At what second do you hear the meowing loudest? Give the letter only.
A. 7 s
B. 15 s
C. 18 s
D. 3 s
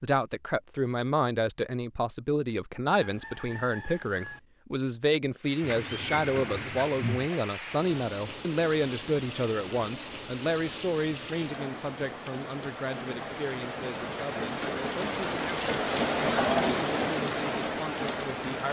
A.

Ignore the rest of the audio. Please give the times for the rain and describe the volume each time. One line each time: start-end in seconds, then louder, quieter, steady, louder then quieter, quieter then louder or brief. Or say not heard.
5.4-18.6 louder.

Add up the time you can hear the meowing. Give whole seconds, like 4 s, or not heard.
2 s.